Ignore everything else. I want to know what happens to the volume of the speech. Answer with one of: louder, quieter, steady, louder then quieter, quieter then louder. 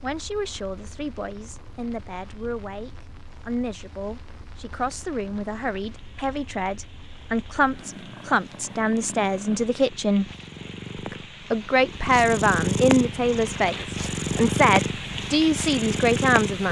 louder.